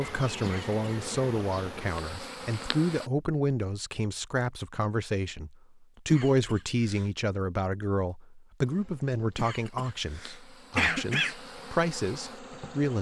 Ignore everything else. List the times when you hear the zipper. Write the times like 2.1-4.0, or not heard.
not heard.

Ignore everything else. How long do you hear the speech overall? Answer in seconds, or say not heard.
13 s.